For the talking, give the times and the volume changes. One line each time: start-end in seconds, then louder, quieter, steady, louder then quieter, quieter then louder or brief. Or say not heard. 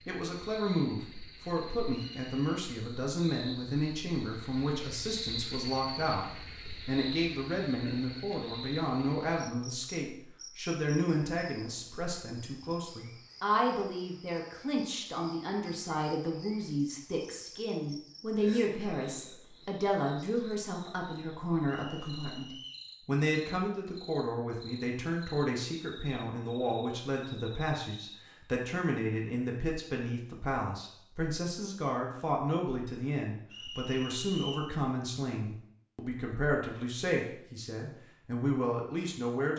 0.1-39.5 steady.